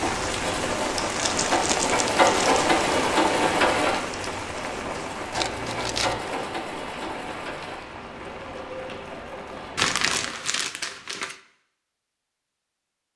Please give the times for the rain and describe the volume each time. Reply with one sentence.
The rain can be heard from 0.0 to 10.3 s, getting quieter.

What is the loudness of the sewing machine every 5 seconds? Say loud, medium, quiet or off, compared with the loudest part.
loud, medium, off.